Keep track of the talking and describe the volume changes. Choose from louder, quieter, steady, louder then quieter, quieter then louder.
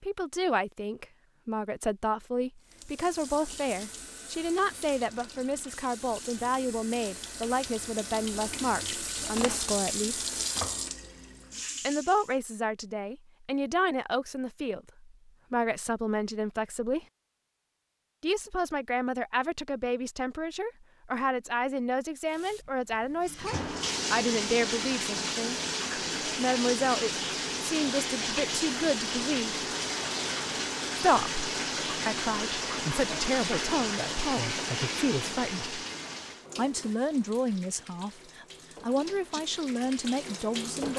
steady.